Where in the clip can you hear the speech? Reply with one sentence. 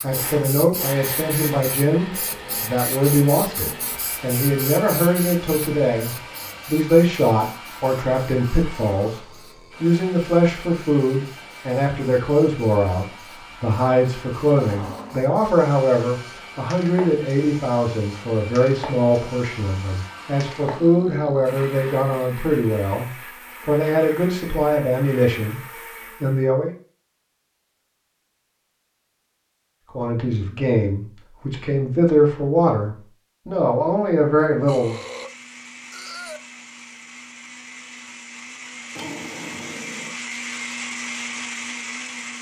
The speech can be heard from 0.0 to 25.6 s, from 26.2 to 26.7 s and from 29.9 to 35.0 s.